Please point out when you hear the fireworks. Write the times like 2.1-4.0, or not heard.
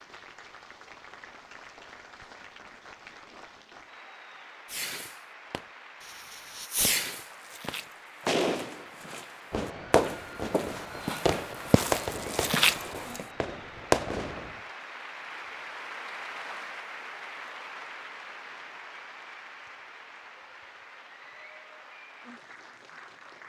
4.7-14.6.